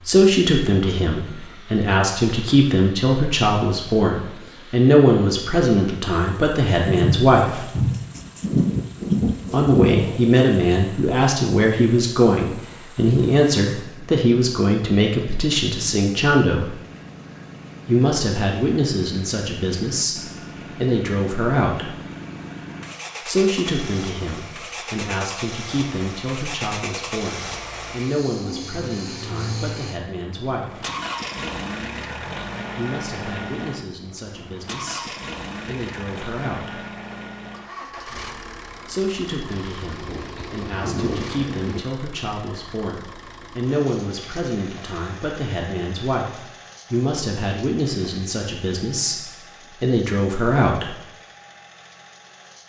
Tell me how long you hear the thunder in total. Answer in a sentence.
You can hear the thunder for 6 seconds altogether.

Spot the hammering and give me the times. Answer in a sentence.
The hammering can't be heard in this clip.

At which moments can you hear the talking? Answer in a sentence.
The talking can be heard from 0.1 to 7.7 s, from 9.5 to 16.8 s, from 17.9 to 21.9 s, from 23.2 to 30.9 s, from 32.8 to 36.8 s and from 38.9 to 50.9 s.